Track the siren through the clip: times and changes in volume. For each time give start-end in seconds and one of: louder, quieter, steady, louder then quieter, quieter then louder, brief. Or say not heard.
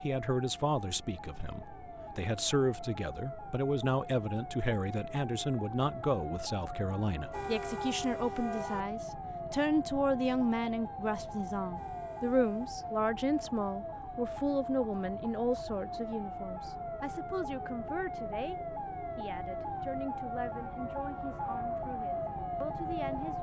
0.0-23.3 louder.